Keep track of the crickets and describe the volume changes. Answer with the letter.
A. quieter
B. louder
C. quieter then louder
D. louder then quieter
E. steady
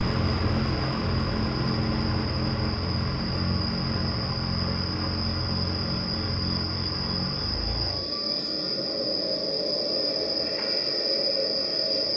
B.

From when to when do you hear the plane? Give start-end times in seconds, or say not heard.
0.0-12.1.